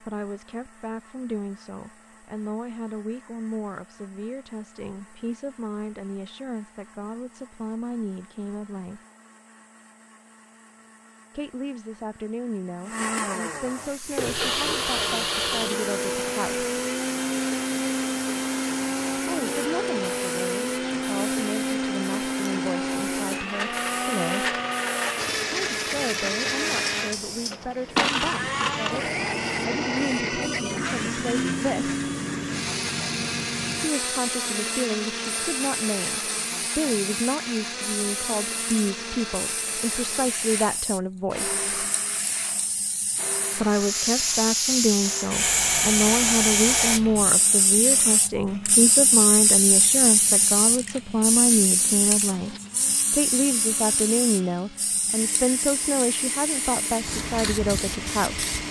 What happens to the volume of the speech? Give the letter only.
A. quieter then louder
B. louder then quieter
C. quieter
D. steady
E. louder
E.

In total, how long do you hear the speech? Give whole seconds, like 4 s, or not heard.
49 s.